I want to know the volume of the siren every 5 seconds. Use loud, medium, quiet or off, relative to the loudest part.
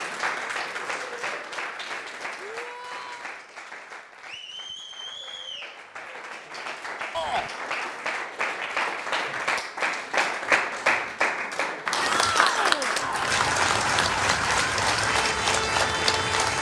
off, off, loud, loud.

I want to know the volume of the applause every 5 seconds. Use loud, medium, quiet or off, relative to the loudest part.
medium, medium, loud, loud.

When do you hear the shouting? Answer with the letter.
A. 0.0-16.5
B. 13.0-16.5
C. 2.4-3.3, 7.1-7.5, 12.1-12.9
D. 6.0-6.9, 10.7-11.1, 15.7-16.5
C.